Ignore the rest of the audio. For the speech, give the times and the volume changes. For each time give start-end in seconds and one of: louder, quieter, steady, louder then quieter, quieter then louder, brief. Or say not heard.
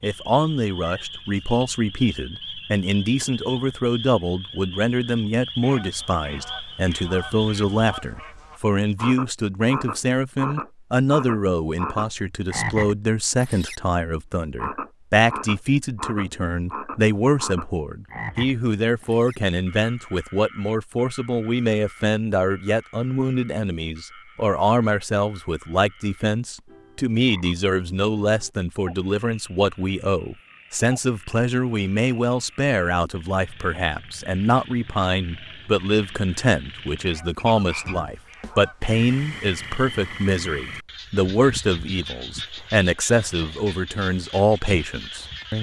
0.0-45.5 steady.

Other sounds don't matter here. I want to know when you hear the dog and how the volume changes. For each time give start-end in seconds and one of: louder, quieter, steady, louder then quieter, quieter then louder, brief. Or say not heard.
not heard.